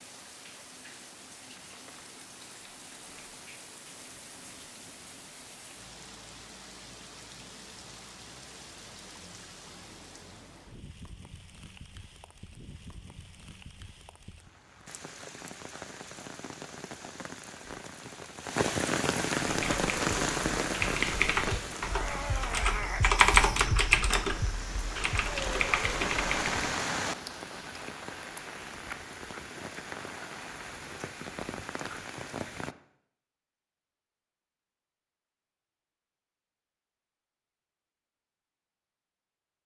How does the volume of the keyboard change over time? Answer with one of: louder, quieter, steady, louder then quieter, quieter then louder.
louder then quieter.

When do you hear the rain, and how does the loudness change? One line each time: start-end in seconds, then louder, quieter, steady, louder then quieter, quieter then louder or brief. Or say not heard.
0.0-32.8 louder.